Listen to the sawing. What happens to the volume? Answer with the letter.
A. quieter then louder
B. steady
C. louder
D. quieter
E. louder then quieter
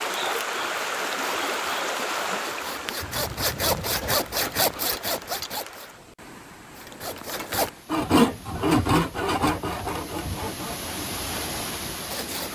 E.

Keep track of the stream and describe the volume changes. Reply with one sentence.
The loudness of the stream goes down, then up.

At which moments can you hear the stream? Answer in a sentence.
You can hear the stream from 0.0 to 12.4 s.